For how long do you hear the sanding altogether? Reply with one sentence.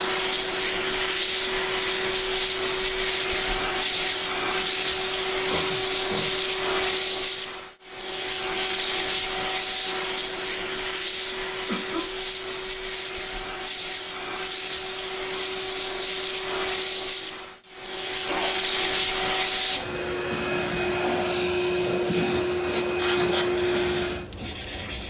You can hear the sanding for 2 seconds altogether.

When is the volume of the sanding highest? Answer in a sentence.
The volume of the sanding peaks at 23 seconds.